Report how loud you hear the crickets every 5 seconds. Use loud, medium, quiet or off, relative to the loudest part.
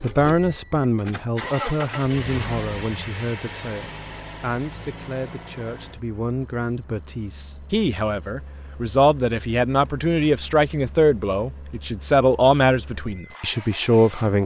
medium, loud, off.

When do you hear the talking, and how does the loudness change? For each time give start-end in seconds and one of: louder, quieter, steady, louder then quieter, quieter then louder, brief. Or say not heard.
0.0-14.4 quieter then louder.